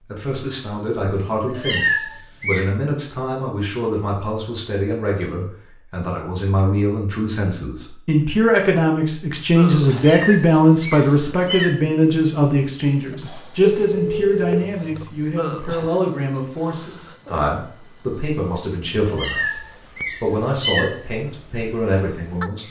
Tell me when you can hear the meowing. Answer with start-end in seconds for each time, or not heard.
1.5-2.6, 9.9-11.7, 19.1-20.9.